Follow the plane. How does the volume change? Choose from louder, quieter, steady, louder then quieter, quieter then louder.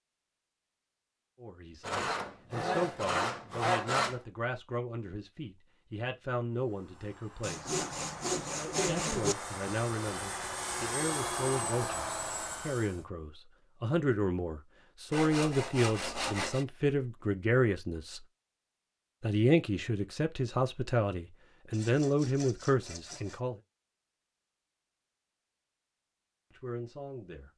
louder.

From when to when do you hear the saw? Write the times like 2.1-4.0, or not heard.
1.8-4.2, 7.4-9.3, 15.1-16.6, 21.7-23.4.